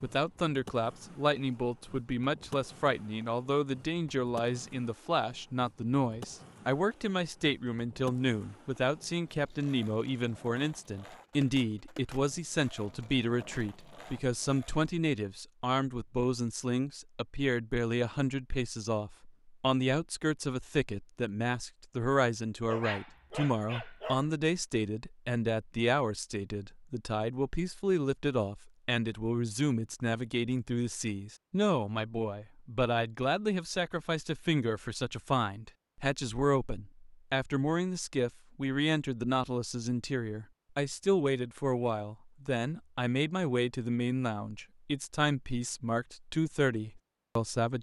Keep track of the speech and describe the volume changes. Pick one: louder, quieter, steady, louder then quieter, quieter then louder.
steady.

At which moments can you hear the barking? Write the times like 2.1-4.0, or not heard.
22.6-24.3.